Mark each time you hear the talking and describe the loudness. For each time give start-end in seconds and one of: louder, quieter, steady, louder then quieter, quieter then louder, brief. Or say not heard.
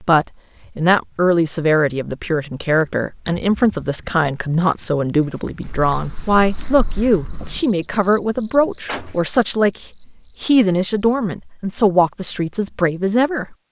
0.0-13.6 steady.